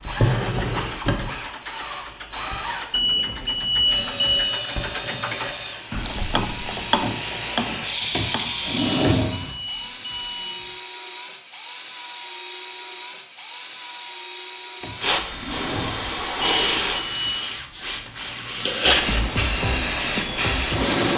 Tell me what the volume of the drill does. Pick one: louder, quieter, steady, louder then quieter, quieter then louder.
steady.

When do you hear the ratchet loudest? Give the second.
7 s.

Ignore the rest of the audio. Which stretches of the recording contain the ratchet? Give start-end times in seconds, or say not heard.
0.0-8.7.